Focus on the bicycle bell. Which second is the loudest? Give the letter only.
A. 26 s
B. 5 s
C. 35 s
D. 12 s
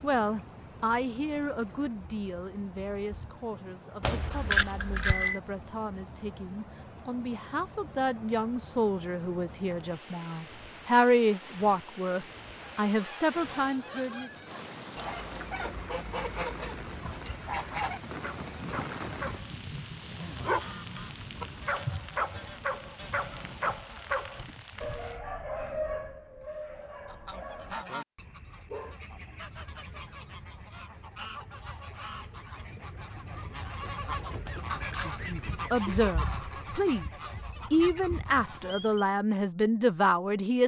B.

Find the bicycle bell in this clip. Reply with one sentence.
You can hear the bicycle bell from 4.0 to 5.4 s and from 34.5 to 35.2 s.